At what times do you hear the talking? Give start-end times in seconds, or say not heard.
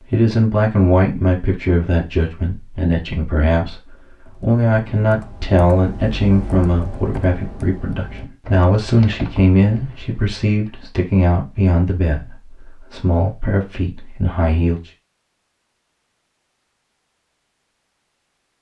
0.0-14.8.